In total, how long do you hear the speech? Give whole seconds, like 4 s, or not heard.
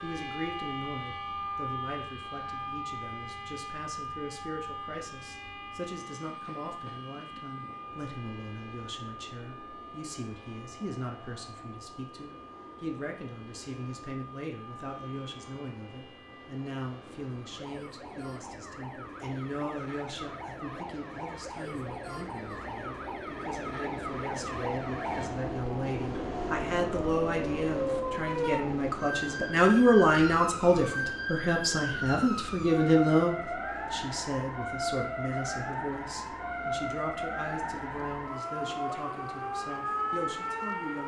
41 s.